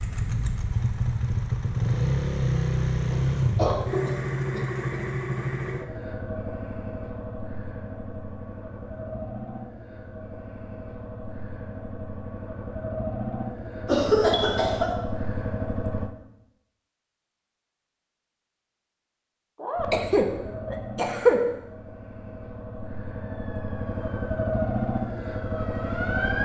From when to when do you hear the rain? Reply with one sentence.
You can't hear the rain here.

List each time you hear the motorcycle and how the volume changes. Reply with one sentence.
You can hear the motorcycle from 0.0 to 16.1 s, getting quieter then louder; and from 19.8 to 26.3 s, getting quieter then louder.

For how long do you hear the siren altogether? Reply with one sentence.
The siren can be heard for 3 seconds in total.